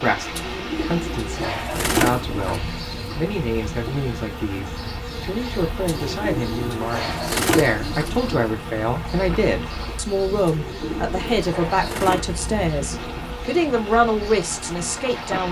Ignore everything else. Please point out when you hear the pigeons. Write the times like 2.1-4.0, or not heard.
0.3-2.6, 5.8-8.3, 10.4-12.2.